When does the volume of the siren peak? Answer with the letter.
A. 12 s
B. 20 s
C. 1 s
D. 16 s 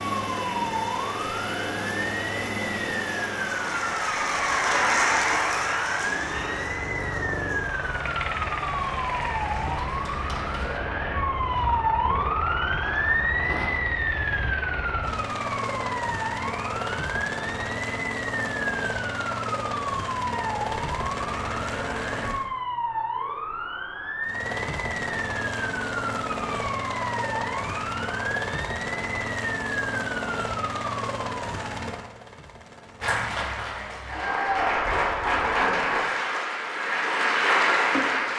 A.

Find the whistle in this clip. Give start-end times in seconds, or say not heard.
not heard.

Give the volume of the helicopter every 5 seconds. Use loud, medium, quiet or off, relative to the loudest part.
loud, loud, loud, loud, loud, loud, loud, off.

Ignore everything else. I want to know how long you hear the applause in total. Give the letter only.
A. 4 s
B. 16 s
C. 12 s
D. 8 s
B.